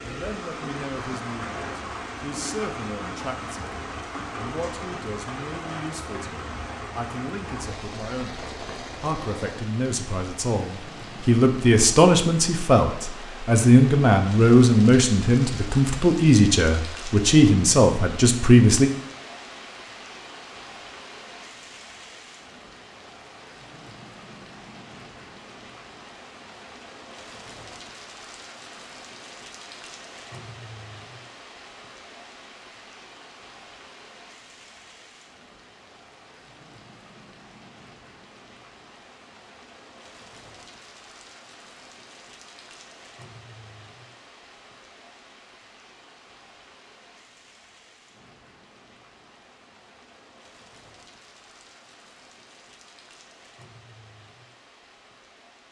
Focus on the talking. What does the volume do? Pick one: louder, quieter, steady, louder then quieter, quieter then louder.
louder.